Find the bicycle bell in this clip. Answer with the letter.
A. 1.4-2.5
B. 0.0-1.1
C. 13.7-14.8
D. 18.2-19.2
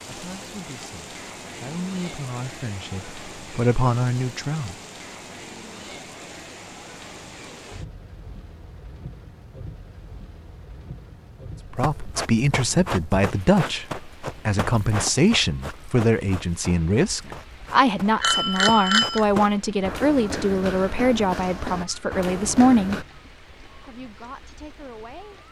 D.